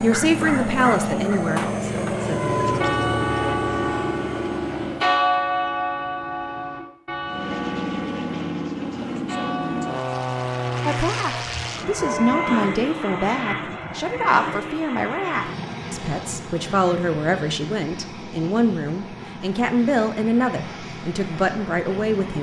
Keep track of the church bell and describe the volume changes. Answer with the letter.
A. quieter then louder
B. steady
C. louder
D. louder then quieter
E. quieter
E.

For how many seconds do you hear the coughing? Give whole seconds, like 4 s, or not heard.
2 s.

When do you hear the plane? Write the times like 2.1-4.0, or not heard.
0.0-5.1, 7.2-22.3.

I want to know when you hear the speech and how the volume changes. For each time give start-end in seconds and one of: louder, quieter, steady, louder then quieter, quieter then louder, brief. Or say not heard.
0.0-2.8 brief
10.8-22.3 steady.